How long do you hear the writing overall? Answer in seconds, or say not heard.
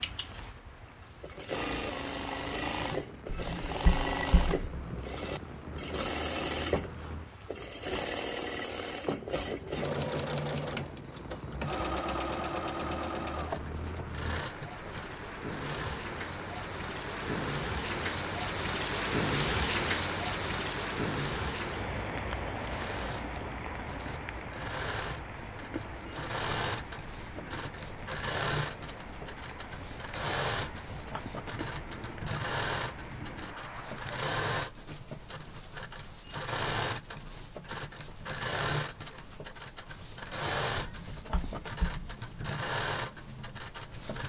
3 s.